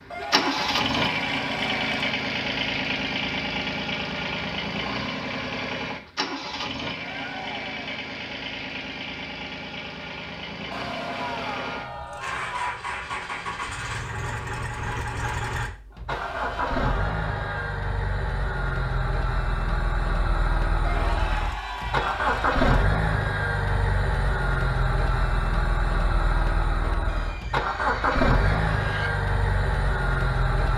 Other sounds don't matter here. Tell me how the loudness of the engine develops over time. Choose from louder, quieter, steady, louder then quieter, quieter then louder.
quieter then louder.